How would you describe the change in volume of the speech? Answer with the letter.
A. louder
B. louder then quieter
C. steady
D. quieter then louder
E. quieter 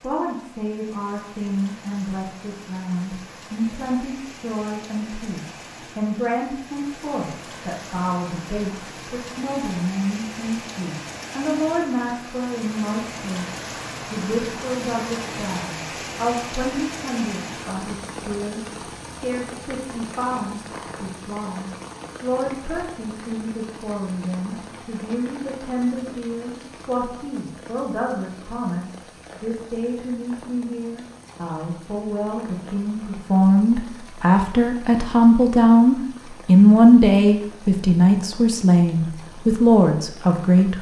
A.